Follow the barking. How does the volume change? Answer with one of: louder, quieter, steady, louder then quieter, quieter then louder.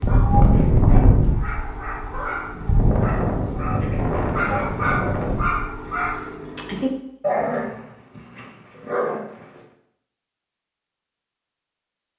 louder.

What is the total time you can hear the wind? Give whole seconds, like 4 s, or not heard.
6 s.